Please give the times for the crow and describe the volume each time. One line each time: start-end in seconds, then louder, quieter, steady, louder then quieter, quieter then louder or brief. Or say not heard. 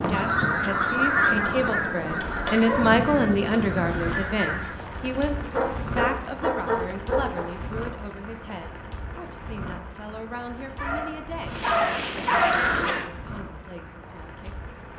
0.0-4.8 quieter
11.4-13.1 brief.